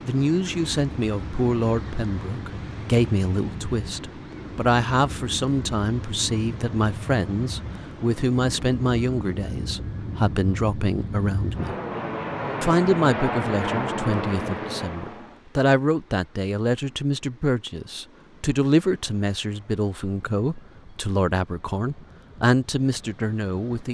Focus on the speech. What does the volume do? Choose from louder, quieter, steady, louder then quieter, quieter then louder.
steady.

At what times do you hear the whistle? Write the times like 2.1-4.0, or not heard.
not heard.